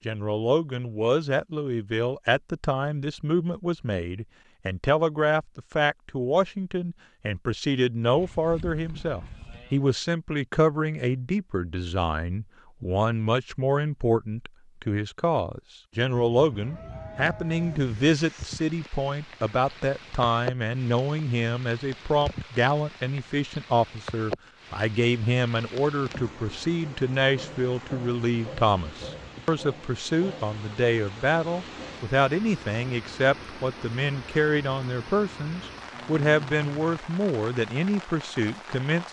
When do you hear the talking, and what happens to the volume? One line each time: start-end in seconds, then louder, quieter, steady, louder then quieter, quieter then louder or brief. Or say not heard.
0.1-39.0 steady.